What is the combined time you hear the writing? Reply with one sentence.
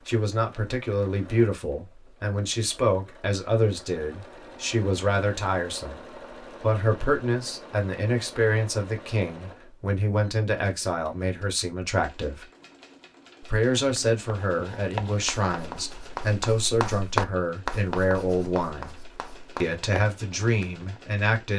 You can hear the writing for 7 seconds altogether.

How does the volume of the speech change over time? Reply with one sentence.
The volume of the speech stays about the same.